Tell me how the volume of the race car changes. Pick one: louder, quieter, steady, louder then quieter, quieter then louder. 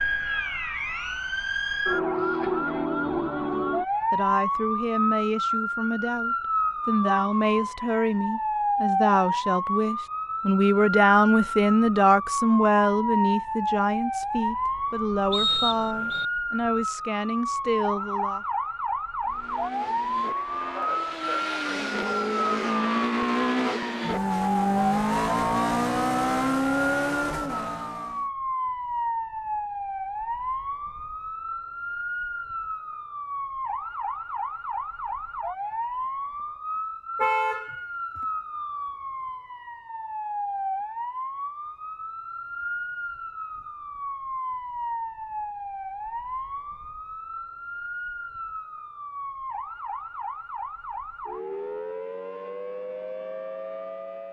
louder.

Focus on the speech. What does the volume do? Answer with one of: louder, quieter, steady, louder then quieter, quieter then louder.
louder then quieter.